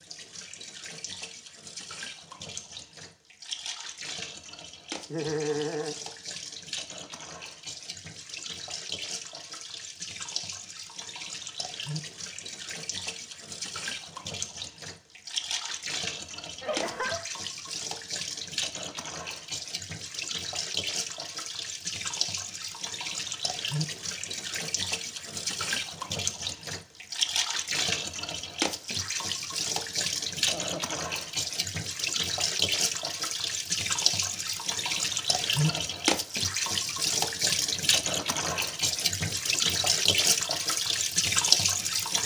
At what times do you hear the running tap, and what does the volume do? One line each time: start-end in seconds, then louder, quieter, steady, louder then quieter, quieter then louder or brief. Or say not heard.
0.0-42.2 louder.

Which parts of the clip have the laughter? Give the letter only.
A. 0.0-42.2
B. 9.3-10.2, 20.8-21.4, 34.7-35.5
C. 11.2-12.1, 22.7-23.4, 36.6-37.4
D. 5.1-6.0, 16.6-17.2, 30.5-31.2
D.